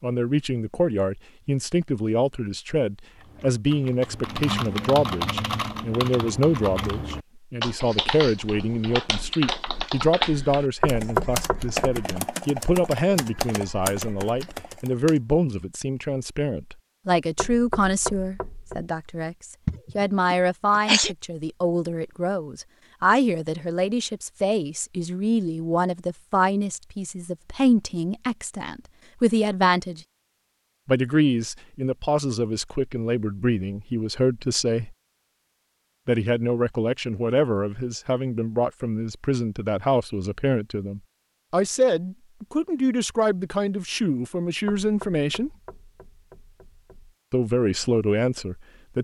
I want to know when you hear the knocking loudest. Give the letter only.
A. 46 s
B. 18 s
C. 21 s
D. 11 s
D.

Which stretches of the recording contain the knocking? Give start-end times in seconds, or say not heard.
10.8-12.1, 17.4-18.9, 44.6-47.1.